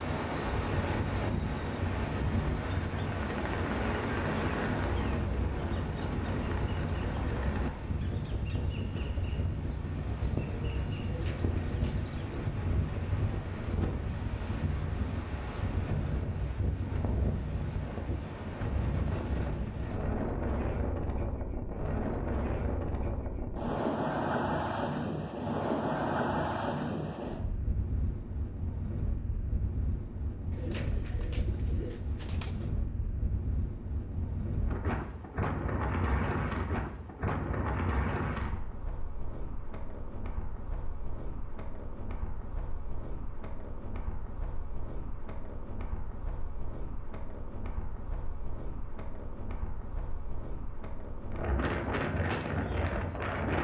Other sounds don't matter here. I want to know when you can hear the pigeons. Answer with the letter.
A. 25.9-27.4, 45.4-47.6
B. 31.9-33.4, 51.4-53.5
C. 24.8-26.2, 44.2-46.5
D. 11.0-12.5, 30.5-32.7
D.